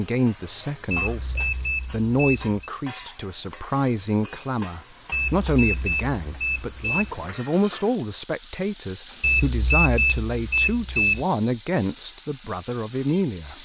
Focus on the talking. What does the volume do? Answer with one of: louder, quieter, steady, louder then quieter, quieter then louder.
steady.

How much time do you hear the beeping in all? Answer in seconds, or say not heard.
6 s.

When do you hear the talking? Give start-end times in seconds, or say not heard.
0.0-13.6.